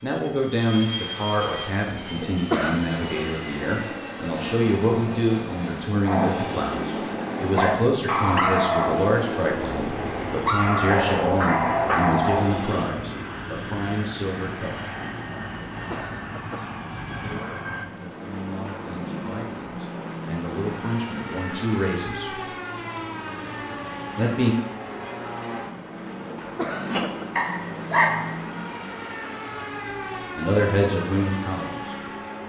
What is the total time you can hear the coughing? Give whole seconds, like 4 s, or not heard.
3 s.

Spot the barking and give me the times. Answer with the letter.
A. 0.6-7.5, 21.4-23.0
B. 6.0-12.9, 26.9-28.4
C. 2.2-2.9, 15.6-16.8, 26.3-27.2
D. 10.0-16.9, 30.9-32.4
B.